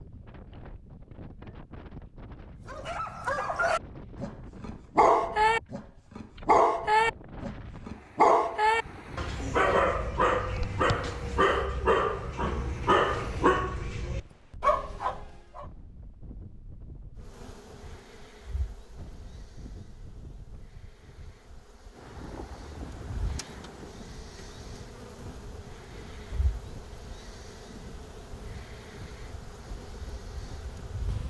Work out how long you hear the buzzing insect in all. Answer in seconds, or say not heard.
14 s.